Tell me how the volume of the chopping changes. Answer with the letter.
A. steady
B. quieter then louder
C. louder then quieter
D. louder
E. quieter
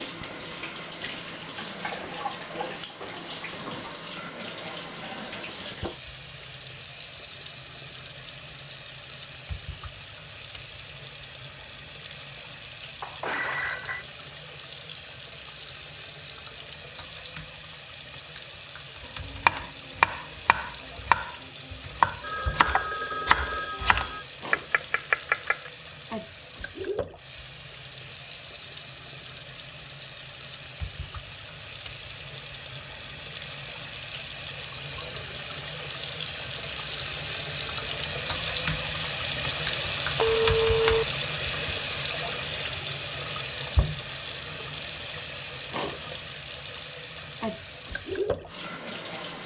A.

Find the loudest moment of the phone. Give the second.
41 s.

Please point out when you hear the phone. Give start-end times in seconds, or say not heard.
13.0-14.1, 22.2-24.2, 40.1-41.0.